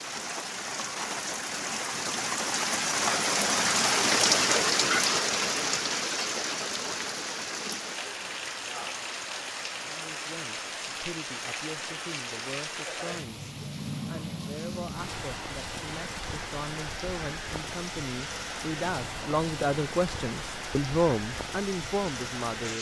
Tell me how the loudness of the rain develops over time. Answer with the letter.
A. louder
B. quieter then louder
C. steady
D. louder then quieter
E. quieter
E.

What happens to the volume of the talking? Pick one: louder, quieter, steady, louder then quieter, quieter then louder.
louder.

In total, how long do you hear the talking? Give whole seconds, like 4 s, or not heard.
13 s.